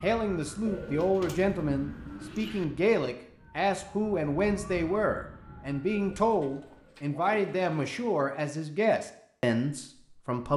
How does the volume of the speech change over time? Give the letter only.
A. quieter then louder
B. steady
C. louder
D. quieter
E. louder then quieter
B.